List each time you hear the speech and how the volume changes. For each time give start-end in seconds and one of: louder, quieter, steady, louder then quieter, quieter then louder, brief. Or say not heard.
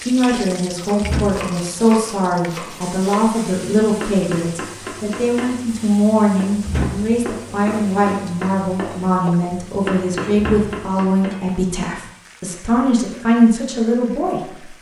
0.0-14.7 steady.